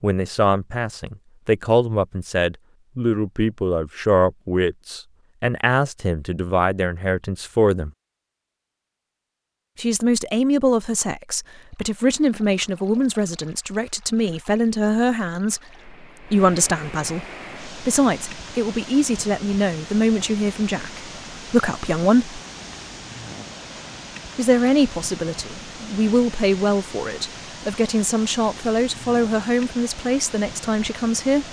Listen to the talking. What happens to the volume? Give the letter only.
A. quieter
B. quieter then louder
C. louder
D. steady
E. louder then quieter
D.